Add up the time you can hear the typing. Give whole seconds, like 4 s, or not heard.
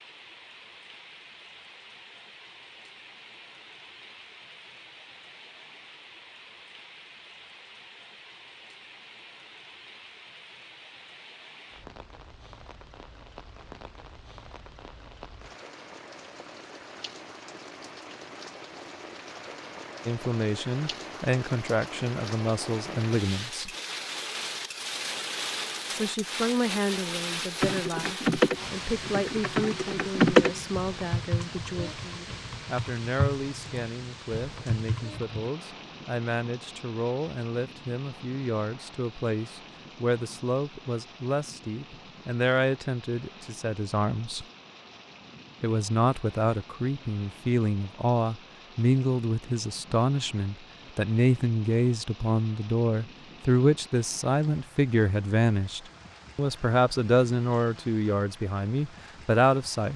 8 s.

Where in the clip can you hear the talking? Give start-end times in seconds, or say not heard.
20.1-23.7, 25.9-44.5, 45.6-59.9.